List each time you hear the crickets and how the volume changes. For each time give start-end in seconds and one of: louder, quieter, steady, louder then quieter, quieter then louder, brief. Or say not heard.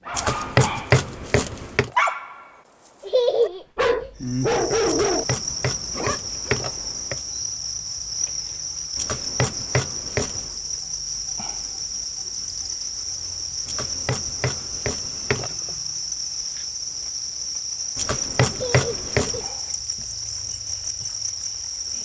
4.2-22.0 steady.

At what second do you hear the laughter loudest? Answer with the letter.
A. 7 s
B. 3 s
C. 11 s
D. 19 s
B.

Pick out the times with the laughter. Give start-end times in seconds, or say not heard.
3.0-4.1, 18.5-19.5.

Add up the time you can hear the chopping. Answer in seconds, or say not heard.
9 s.